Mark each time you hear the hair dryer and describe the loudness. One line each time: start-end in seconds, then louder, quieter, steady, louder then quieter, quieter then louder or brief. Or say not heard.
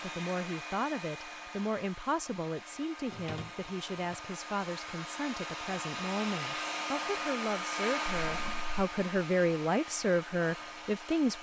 0.0-11.3 louder then quieter.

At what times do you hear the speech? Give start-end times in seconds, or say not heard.
0.0-11.3.